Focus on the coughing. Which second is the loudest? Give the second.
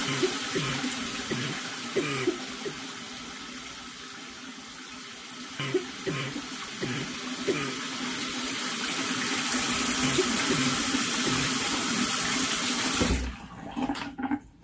2 s.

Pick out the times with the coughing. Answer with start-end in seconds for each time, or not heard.
0.1-2.8, 5.5-7.8, 10.0-11.6.